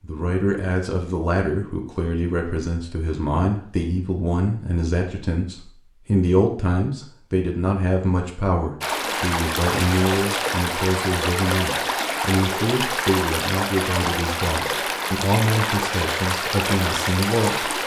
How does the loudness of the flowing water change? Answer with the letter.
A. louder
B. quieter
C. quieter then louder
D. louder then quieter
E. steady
E.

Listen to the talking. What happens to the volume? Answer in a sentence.
The loudness of the talking stays about the same.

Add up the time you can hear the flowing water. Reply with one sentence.
The flowing water can be heard for 9 seconds in total.